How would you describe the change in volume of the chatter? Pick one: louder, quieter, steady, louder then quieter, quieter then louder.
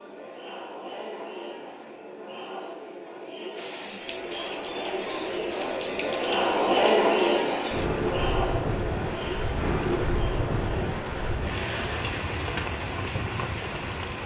louder then quieter.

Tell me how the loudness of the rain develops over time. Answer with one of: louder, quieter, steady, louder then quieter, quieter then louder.
louder.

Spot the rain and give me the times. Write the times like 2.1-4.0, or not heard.
3.5-14.2.